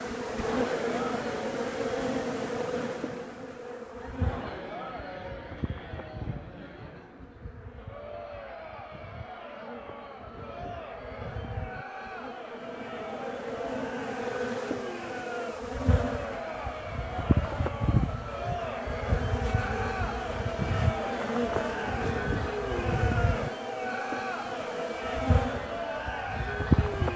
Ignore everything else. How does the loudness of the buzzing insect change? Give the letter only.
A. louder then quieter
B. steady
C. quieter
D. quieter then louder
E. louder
D.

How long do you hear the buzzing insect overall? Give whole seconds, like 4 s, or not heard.
27 s.